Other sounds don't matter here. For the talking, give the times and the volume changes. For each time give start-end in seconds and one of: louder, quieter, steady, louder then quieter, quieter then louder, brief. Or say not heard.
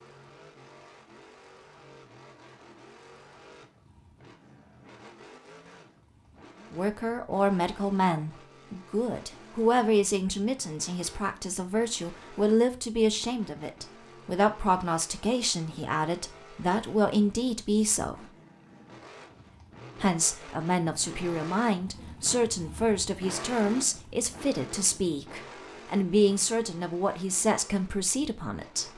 6.7-18.3 steady
20.0-28.9 steady.